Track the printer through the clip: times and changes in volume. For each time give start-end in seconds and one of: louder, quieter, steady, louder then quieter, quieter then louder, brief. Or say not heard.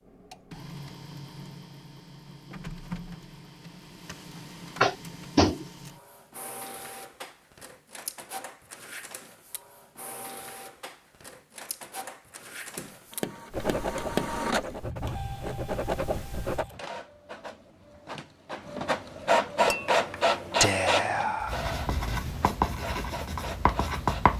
0.0-24.3 louder.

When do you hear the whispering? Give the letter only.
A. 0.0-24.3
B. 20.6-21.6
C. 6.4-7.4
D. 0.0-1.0
B.